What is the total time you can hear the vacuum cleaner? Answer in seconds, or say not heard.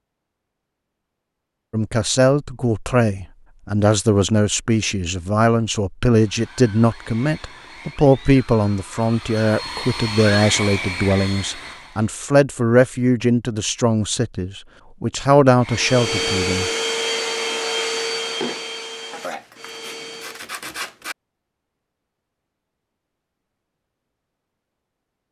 11 s.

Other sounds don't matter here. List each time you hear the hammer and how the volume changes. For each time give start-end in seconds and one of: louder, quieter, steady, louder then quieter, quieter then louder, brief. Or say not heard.
not heard.